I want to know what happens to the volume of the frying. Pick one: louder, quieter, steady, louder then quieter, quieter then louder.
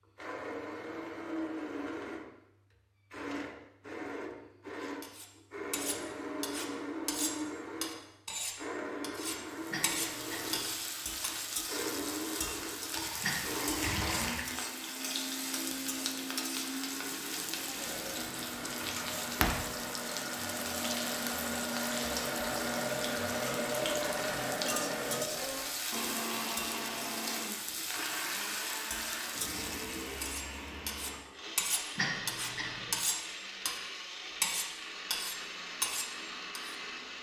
steady.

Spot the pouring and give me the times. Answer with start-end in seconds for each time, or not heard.
12.9-14.4.